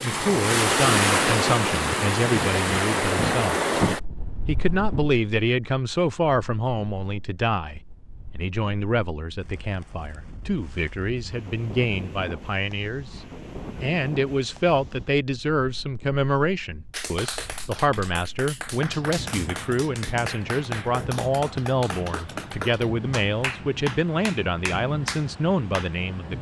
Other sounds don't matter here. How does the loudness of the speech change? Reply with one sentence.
The volume of the speech stays about the same.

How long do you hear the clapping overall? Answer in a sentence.
You can hear the clapping for 9 seconds altogether.